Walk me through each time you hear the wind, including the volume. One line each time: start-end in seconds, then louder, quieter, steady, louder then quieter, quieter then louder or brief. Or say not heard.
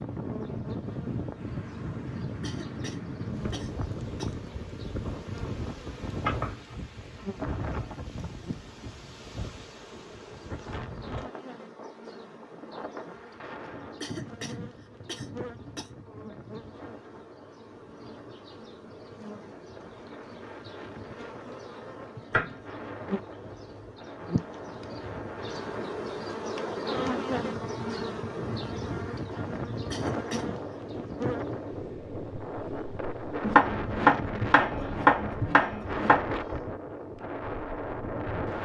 0.0-38.5 quieter then louder.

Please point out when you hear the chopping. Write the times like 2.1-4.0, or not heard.
6.2-7.8, 22.3-23.9, 33.4-36.3.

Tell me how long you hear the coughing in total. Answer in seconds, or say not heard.
5 s.